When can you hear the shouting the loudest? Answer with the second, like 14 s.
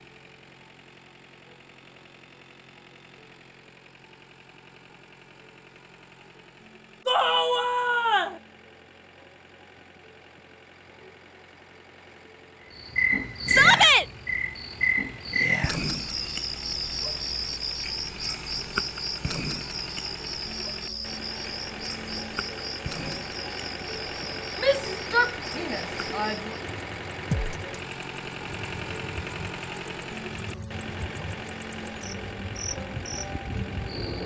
14 s.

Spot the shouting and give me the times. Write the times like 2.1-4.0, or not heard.
7.0-8.3, 13.4-14.1, 24.6-26.6.